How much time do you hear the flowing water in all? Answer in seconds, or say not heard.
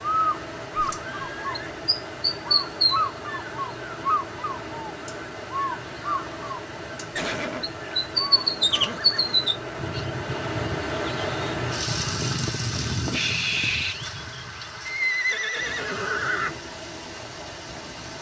18 s.